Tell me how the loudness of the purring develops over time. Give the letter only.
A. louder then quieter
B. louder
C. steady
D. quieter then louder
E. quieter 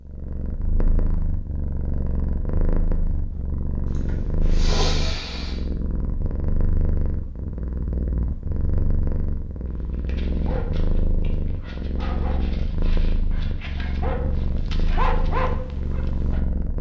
C.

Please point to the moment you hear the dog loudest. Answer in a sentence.
The volume of the dog peaks at 15 seconds.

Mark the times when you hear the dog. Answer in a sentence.
You can hear the dog from 9.8 to 16.4 s.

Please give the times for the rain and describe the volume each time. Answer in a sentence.
The rain can't be heard in this clip.